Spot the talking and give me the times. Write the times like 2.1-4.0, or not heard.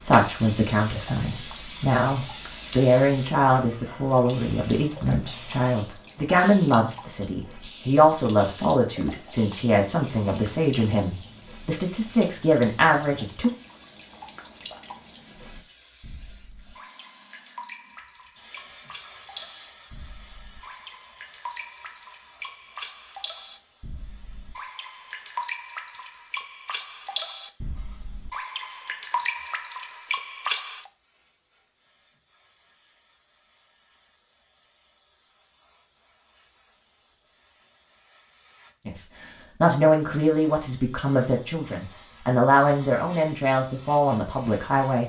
0.0-13.5, 38.9-45.0.